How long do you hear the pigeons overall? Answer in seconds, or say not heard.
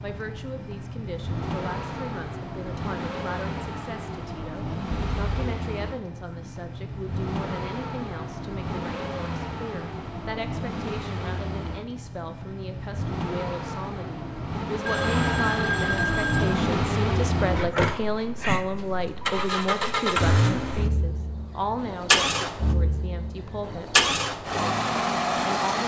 not heard.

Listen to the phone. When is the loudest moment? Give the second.
16 s.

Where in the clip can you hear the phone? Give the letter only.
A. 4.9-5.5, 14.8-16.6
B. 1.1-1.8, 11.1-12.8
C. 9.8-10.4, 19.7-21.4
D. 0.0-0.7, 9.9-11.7
A.